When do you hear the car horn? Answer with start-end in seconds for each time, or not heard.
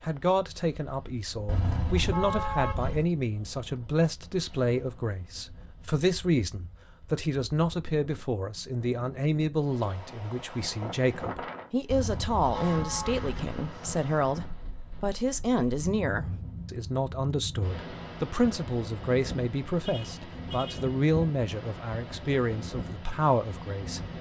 1.4-3.0, 11.8-13.3, 19.8-20.9.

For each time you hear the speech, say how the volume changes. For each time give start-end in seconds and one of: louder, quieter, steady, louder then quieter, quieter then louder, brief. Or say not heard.
0.0-24.1 steady.